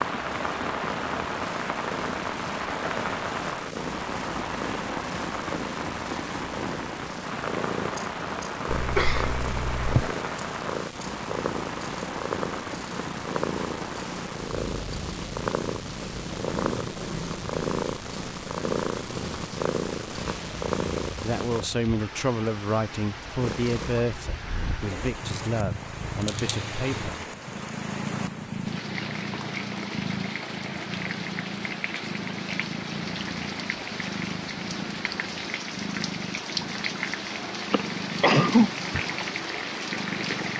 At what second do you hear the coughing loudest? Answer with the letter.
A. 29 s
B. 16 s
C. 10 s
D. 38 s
D.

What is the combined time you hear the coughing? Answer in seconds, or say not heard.
3 s.